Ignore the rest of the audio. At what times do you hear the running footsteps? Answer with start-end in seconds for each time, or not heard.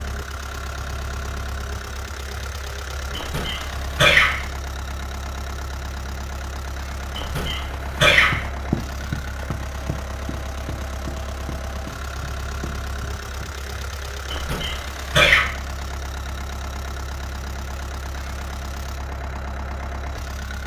8.2-13.7.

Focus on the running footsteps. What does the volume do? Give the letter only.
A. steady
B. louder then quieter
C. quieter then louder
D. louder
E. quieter
E.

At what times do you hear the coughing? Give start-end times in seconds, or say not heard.
3.1-4.5, 7.2-8.5, 14.3-15.6.